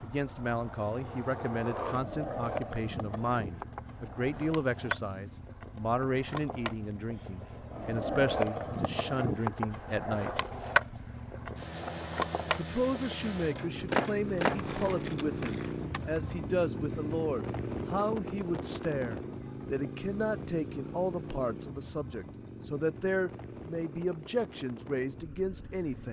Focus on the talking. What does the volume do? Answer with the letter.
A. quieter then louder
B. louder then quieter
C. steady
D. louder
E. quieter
C.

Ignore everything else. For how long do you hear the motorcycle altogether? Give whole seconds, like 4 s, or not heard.
26 s.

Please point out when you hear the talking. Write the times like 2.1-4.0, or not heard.
0.0-10.4, 12.6-26.0.